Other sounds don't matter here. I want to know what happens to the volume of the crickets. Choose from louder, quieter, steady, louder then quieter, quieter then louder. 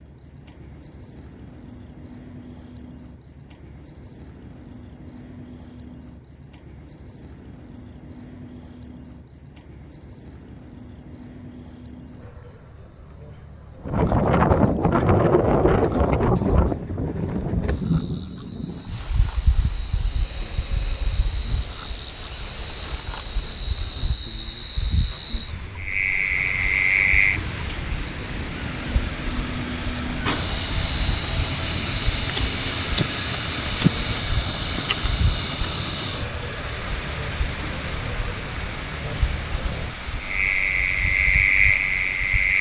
louder.